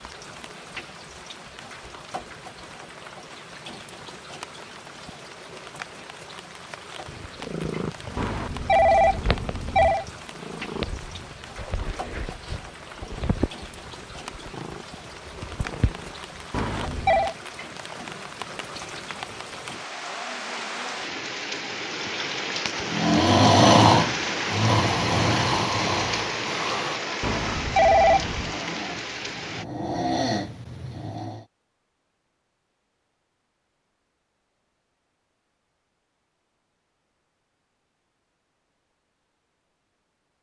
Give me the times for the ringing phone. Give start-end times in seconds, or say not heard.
8.2-10.1, 16.5-17.4, 27.2-28.5.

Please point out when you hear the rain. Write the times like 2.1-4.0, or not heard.
0.0-29.6.